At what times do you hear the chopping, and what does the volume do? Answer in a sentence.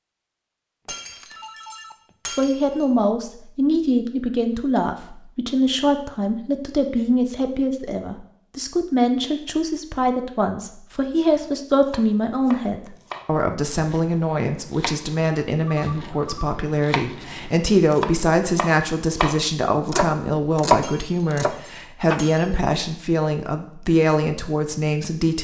You can hear the chopping from 11.8 to 22.2 s, getting louder.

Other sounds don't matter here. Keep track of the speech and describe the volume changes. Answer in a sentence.
The volume of the speech stays about the same.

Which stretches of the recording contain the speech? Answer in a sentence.
You can hear the speech from 2.3 to 25.3 s.